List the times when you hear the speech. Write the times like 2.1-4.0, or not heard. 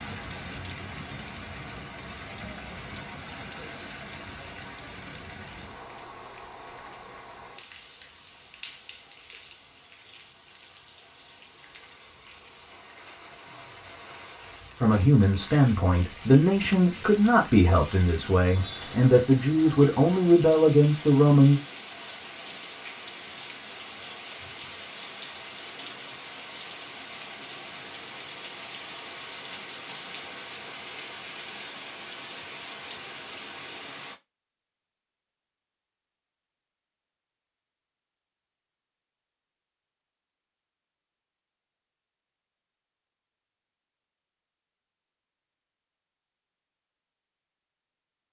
14.8-21.6.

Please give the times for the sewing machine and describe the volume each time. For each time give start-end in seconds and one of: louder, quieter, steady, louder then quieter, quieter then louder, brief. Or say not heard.
not heard.